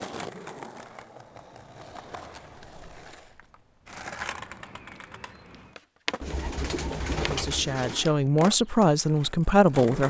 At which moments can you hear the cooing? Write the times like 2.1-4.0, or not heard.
6.2-8.1.